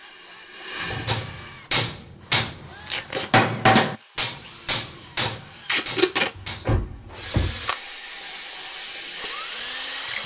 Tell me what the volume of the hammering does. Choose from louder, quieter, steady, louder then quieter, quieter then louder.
quieter.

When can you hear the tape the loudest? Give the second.
6 s.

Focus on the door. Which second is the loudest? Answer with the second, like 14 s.
7 s.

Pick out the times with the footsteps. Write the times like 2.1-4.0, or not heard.
not heard.